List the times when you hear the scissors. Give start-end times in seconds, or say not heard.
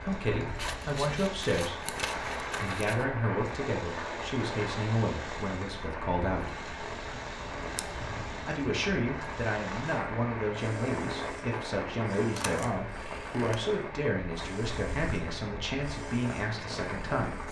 0.6-3.0, 12.3-13.6.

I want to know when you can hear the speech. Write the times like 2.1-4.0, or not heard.
0.0-1.8, 2.6-6.5, 8.4-17.4.